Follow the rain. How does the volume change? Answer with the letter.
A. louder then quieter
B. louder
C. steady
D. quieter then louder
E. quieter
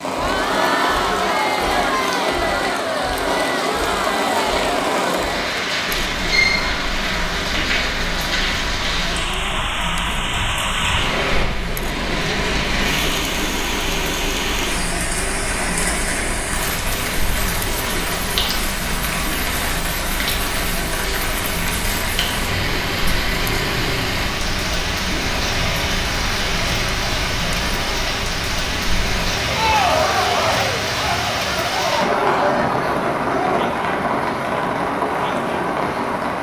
C.